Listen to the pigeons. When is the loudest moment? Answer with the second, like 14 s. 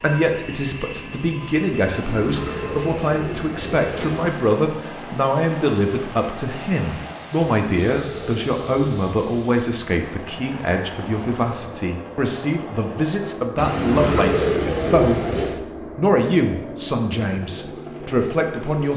14 s.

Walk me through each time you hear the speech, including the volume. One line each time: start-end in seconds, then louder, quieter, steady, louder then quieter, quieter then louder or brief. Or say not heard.
0.0-15.2 steady
15.9-18.9 brief.